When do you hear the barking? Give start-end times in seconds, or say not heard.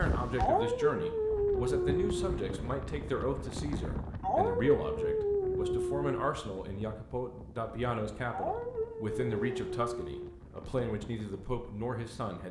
0.3-2.3, 4.2-6.1, 8.3-10.4.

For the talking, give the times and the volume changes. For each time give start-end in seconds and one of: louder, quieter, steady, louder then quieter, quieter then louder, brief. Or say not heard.
0.0-12.4 steady.